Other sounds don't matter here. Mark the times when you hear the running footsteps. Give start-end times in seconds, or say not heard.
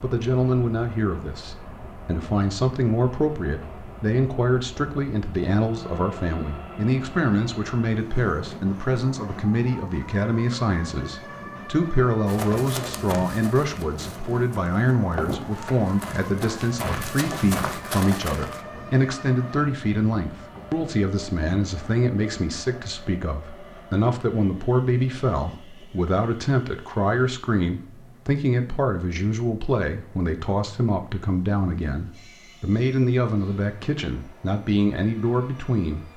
12.2-18.6.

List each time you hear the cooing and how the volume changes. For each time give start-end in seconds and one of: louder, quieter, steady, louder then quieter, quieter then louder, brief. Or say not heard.
not heard.